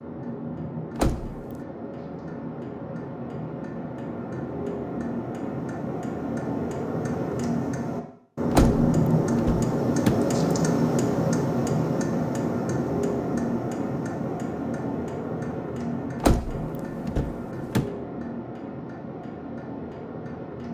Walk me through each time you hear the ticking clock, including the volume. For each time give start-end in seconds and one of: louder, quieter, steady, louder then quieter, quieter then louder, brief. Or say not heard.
0.0-20.6 louder then quieter.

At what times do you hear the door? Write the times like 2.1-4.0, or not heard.
0.9-1.4, 8.5-10.2, 16.2-17.9.